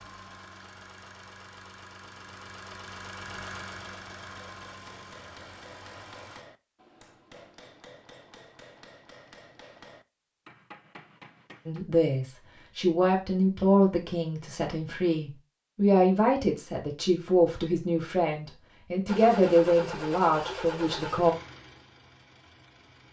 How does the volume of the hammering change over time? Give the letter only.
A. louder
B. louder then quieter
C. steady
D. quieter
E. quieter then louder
C.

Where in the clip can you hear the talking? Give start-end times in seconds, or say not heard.
11.7-21.4.